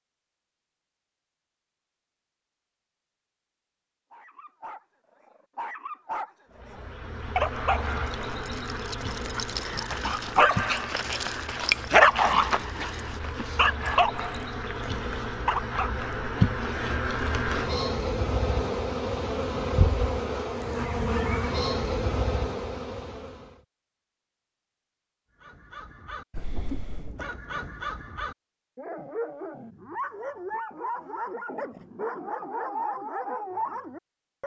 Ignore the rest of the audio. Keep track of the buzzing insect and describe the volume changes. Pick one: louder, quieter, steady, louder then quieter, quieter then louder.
louder.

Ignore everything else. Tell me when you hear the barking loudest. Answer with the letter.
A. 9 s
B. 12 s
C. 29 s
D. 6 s
B.